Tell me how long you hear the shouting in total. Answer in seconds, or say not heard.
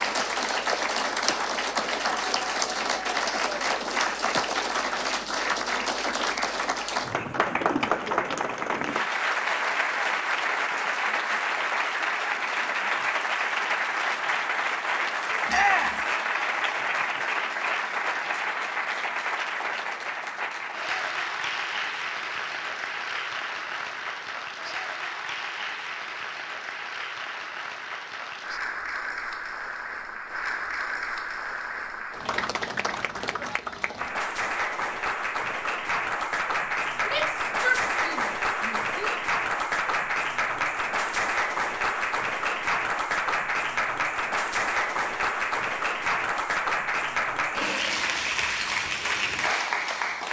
3 s.